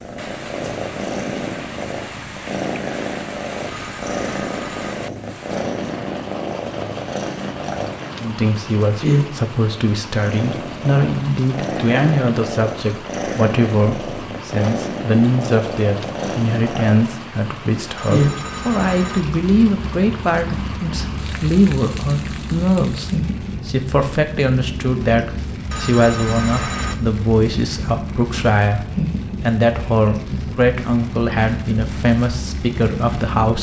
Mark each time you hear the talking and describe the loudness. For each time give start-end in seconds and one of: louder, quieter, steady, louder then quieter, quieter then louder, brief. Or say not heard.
8.2-33.5 steady.